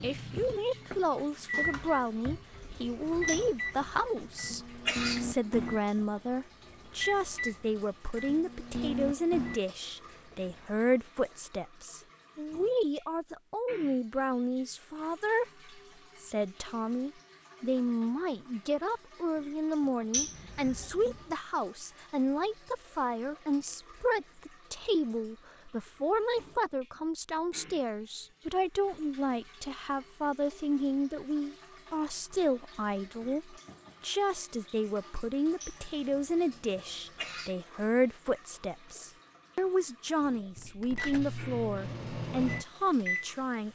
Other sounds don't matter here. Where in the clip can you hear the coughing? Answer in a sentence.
You can hear the coughing from 3.2 to 5.2 s, from 20.1 to 21.4 s and from 35.6 to 37.5 s.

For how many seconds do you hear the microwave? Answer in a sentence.
The microwave can be heard for 14 seconds in total.